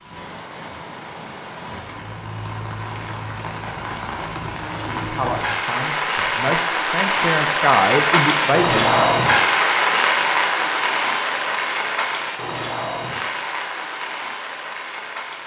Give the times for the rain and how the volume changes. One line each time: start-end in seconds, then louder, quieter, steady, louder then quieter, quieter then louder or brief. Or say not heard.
0.0-15.4 louder then quieter.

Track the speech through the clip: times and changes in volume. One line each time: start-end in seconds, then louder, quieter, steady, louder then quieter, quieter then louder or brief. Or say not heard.
5.0-9.1 louder.